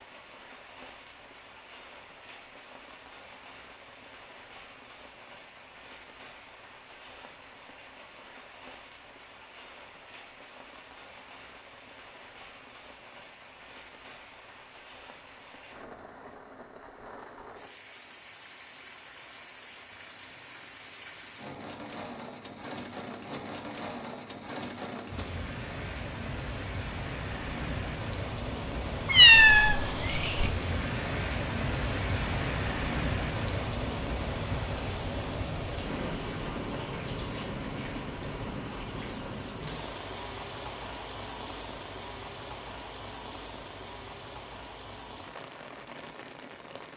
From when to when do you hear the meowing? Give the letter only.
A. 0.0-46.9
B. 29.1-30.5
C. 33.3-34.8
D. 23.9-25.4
B.